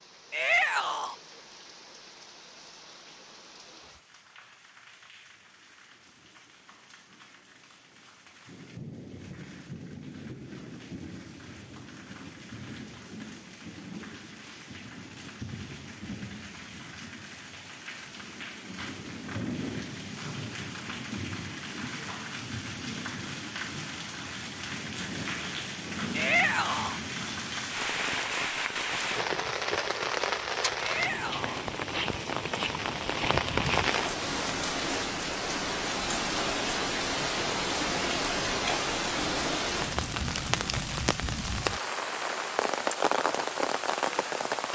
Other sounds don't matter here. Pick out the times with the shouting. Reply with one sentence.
The shouting can be heard from 0.3 to 1.1 s, from 26.1 to 27.0 s and from 30.8 to 31.6 s.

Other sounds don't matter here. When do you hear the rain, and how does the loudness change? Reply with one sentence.
The rain can be heard from 0.0 to 44.7 s, getting louder.